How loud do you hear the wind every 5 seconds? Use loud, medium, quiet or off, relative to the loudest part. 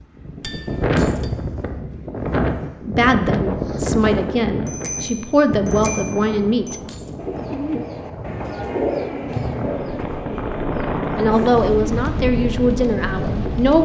loud, medium, loud.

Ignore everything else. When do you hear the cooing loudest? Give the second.
9 s.